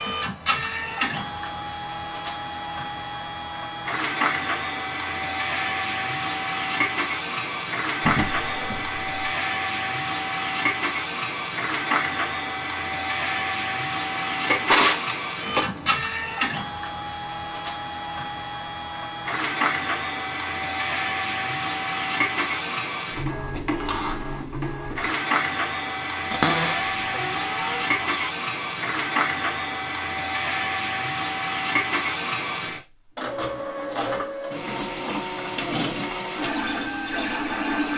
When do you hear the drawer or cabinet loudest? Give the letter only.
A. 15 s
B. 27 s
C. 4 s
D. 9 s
A.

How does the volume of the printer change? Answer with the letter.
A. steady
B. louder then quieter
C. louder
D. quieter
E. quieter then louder
A.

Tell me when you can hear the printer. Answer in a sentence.
The printer can be heard from 0.0 to 37.9 s.